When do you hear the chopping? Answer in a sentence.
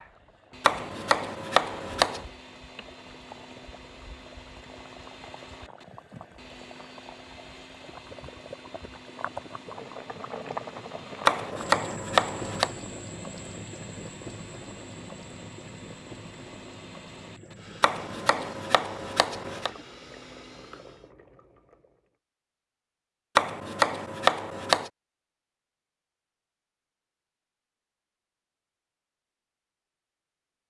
The chopping can be heard from 0.6 to 2.2 s, from 11.2 to 12.7 s, from 17.8 to 19.7 s and from 23.4 to 24.9 s.